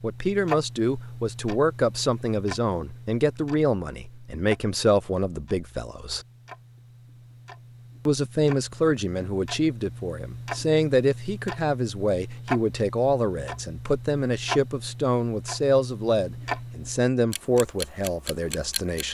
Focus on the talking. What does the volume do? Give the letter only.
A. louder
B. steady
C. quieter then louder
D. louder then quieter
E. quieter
B.